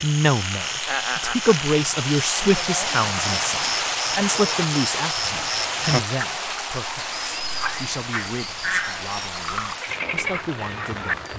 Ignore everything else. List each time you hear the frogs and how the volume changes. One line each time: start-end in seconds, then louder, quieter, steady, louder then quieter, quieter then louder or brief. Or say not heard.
0.0-11.3 steady.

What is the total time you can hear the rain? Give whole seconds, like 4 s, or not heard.
11 s.